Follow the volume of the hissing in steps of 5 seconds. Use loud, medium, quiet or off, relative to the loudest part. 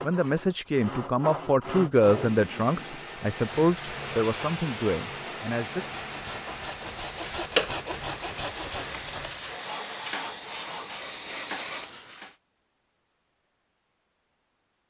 off, loud, medium.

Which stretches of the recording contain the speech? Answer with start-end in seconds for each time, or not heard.
0.0-5.8.